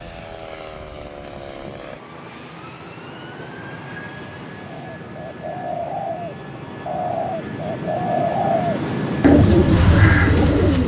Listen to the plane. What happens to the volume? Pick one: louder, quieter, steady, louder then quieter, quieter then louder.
louder.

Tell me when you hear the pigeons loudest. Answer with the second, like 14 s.
9 s.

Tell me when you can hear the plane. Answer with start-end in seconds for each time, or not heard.
0.0-10.8.